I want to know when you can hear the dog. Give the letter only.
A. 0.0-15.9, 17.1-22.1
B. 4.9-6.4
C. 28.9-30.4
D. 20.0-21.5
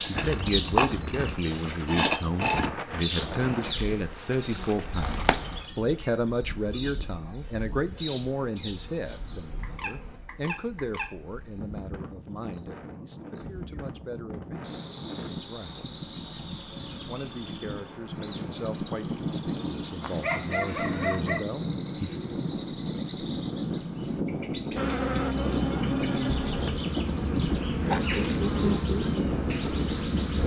D.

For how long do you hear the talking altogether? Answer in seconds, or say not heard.
21 s.